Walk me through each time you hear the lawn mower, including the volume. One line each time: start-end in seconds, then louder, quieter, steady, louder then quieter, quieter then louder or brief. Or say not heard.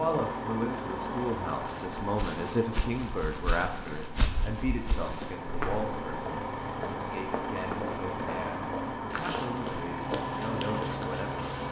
0.0-11.6 quieter then louder.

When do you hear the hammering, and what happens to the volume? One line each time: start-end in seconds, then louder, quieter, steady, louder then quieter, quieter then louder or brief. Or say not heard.
not heard.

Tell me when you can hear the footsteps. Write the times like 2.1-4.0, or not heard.
1.6-11.6.